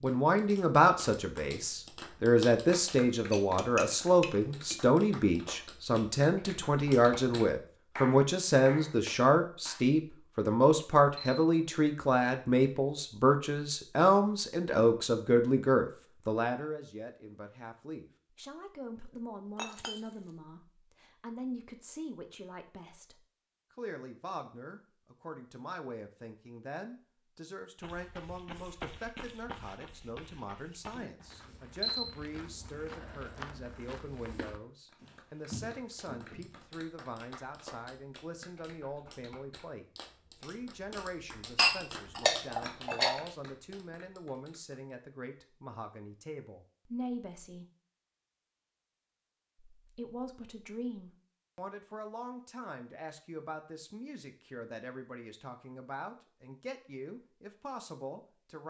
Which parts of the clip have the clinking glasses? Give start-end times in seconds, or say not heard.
3.3-4.8, 19.6-20.0, 41.5-43.1.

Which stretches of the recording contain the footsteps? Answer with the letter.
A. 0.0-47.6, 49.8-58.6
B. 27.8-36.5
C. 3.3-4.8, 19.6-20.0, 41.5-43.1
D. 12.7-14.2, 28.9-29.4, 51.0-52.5
B.